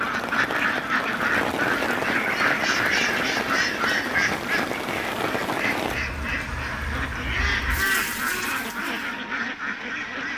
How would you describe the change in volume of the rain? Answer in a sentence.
The loudness of the rain goes down.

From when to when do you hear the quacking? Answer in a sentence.
You can hear the quacking from 0.0 to 10.3 s.